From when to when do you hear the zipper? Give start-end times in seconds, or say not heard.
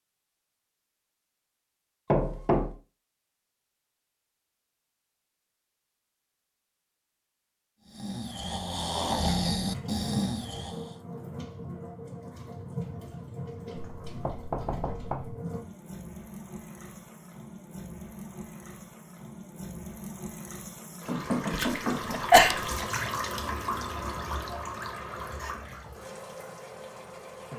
not heard.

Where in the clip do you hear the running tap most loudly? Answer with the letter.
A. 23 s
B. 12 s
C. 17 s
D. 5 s
A.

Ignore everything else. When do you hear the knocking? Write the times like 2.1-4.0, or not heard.
2.1-2.7, 13.8-15.3, 21.1-22.2.